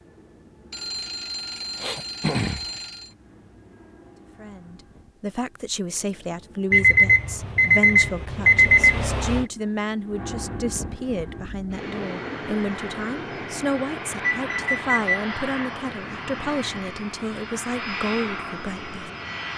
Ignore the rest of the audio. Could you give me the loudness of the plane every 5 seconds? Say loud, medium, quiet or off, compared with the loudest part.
quiet, quiet, loud, loud.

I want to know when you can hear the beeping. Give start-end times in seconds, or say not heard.
0.7-3.1, 6.7-9.4, 14.3-15.3.